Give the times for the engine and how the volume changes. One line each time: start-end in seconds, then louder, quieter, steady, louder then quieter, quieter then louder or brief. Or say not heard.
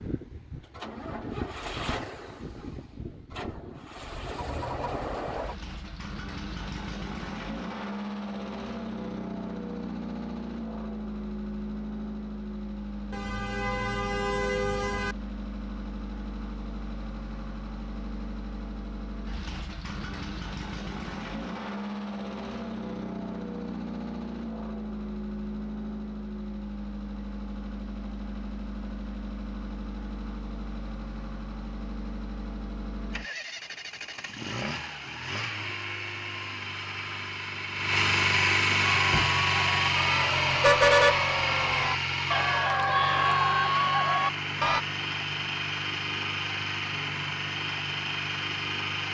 0.0-49.0 louder.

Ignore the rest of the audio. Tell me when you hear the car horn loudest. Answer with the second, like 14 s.
41 s.